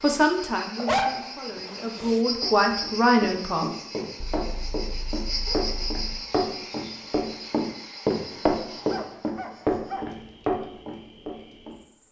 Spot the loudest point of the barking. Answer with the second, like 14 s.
1 s.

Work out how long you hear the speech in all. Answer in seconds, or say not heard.
4 s.